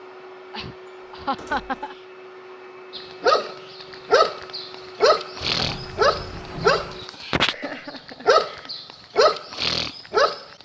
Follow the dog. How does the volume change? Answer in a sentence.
The volume of the dog stays about the same.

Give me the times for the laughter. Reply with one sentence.
The laughter can be heard from 0.5 to 1.9 s and from 7.5 to 8.8 s.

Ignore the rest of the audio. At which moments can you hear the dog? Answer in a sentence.
You can hear the dog from 3.0 to 10.4 s.